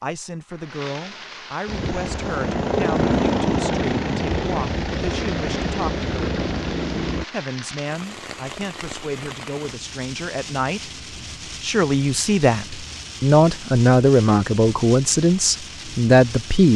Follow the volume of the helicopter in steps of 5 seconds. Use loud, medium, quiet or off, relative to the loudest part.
loud, loud, off, off.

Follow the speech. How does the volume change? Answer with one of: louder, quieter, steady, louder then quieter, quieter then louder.
louder.